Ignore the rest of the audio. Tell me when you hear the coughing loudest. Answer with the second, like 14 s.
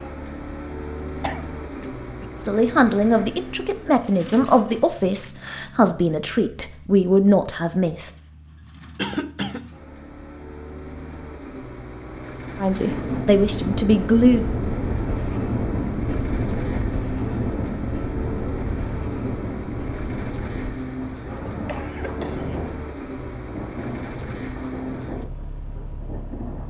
9 s.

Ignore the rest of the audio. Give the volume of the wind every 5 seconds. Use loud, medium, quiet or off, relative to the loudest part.
off, off, loud, loud, medium, medium.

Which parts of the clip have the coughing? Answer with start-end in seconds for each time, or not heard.
1.2-2.3, 8.9-9.7, 21.5-22.6.